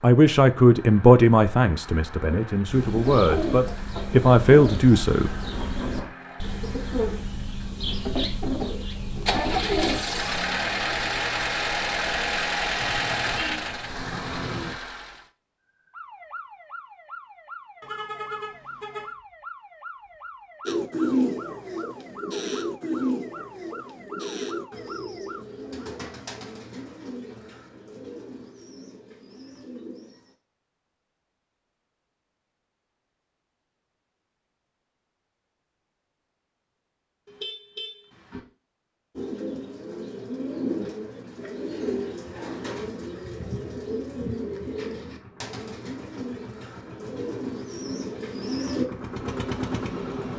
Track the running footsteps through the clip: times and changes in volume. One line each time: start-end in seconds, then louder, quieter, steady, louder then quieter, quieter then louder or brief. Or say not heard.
not heard.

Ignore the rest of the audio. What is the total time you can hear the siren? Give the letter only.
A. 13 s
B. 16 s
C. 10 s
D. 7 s
C.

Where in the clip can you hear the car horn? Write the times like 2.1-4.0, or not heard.
12.8-14.8, 17.8-19.1, 37.2-38.4.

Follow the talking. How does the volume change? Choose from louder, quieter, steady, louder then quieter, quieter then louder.
quieter then louder.